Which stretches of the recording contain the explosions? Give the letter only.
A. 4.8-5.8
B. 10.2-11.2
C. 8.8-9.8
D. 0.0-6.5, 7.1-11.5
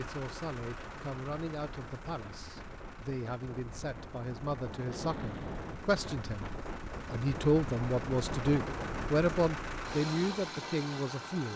A.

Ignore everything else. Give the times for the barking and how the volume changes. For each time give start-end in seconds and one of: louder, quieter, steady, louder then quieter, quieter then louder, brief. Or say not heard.
not heard.